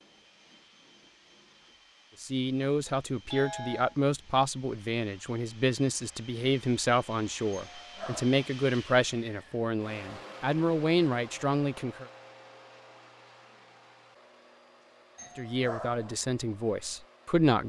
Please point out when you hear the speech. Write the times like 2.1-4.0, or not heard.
2.2-12.1, 15.3-17.6.